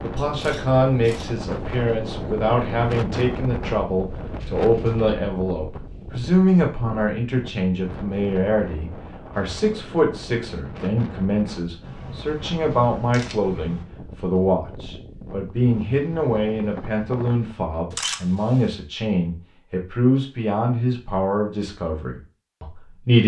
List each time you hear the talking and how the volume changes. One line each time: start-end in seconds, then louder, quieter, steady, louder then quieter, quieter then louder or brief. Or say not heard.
0.0-23.2 steady.